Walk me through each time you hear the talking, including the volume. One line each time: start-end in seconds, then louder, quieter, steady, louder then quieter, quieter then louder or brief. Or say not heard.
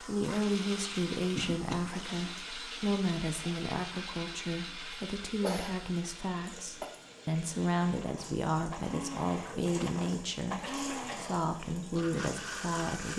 0.0-13.1 steady.